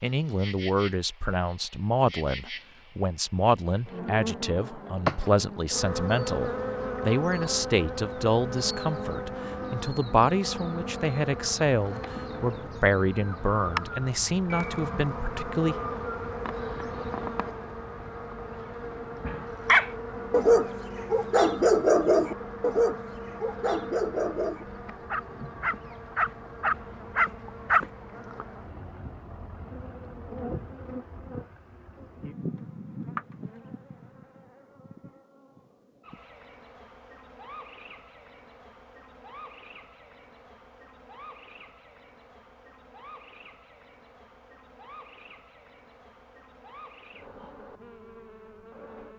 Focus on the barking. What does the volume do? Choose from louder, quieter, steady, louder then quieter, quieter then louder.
quieter then louder.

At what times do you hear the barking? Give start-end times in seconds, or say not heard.
19.6-27.9.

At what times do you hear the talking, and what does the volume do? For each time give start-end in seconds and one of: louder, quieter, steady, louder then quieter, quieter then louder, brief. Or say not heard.
0.0-15.8 steady.